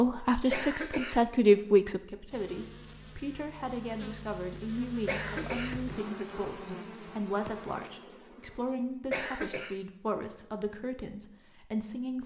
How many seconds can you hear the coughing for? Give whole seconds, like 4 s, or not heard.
2 s.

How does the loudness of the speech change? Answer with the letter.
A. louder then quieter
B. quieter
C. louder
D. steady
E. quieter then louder
B.